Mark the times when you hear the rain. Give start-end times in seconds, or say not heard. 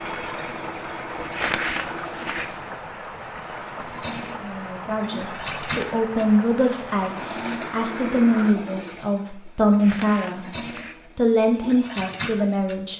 0.0-8.5.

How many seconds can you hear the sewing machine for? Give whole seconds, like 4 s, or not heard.
13 s.